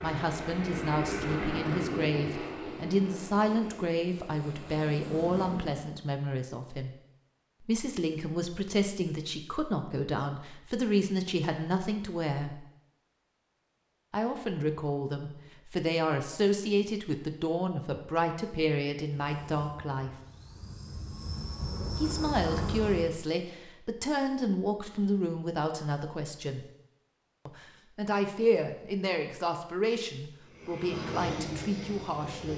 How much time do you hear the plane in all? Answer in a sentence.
The plane can be heard for 12 seconds in total.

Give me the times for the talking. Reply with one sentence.
The talking can be heard from 0.0 to 6.9 s, from 7.6 to 12.6 s, from 14.1 to 20.1 s, from 21.9 to 26.6 s and from 27.4 to 32.5 s.